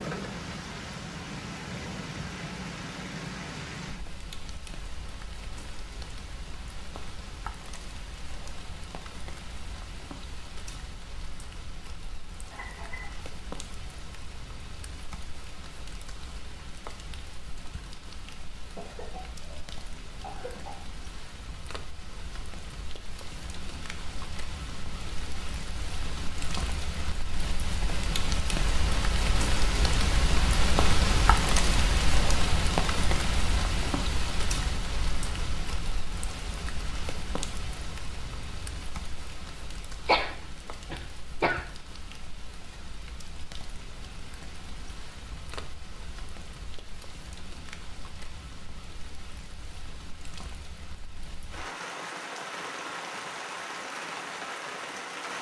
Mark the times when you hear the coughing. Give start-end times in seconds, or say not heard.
12.5-13.2, 18.8-20.8, 40.0-41.7.